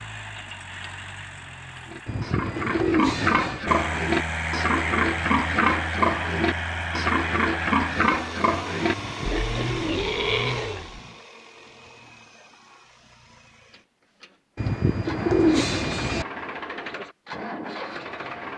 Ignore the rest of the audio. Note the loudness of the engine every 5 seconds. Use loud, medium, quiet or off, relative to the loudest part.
loud, loud, medium, loud.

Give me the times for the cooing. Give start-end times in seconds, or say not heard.
2.0-3.6, 8.9-10.4, 14.6-16.2.